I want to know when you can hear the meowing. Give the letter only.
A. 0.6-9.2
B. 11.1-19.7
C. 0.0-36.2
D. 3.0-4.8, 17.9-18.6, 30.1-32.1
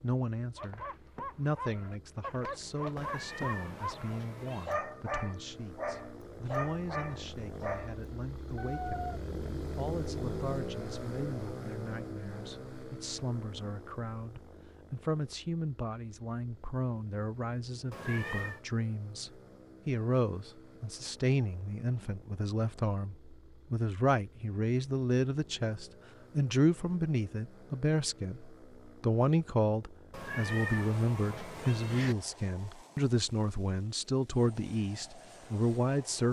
D.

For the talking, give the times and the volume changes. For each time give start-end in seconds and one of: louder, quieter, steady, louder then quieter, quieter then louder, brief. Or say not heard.
0.0-36.2 louder.